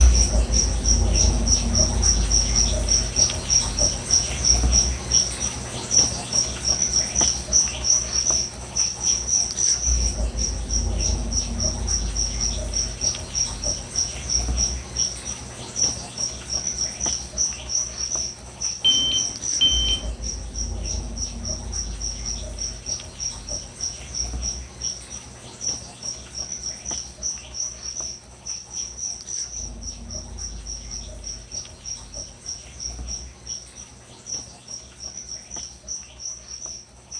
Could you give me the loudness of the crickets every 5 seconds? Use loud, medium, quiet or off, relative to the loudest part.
loud, loud, medium, medium, medium, medium, quiet, quiet.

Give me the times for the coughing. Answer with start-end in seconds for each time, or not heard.
not heard.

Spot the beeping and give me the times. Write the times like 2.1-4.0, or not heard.
18.8-20.1.